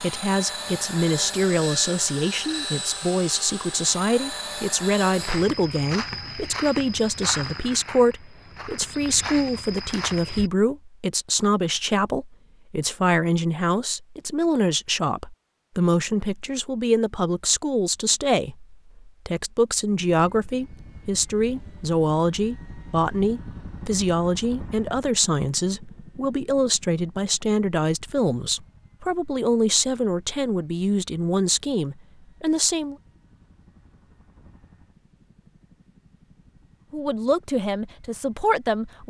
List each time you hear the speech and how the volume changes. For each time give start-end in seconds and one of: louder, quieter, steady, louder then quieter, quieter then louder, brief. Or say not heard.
0.0-33.0 steady
36.9-39.0 brief.